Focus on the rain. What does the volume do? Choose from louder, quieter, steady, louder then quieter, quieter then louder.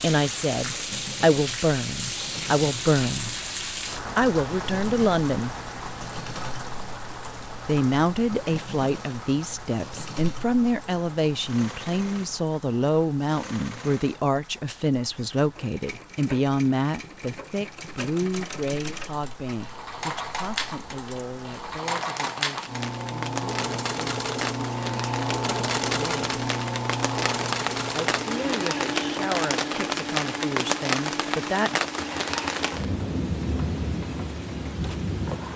quieter then louder.